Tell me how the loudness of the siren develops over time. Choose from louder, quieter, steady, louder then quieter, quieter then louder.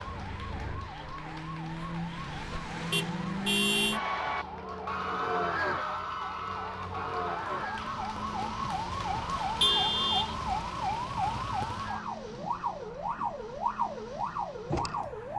louder.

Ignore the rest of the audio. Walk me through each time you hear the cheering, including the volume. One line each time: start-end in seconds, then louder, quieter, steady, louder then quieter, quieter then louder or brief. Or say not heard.
3.9-12.1 quieter.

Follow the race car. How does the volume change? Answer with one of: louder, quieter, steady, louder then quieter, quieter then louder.
quieter.